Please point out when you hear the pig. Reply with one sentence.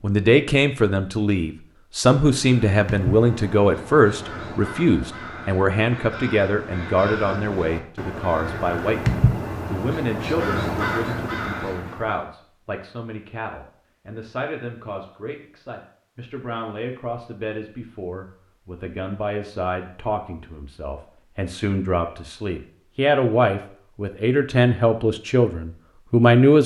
The pig can't be heard in this clip.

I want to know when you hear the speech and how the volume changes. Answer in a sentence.
You can hear the speech from 0.0 to 26.6 s, getting quieter then louder.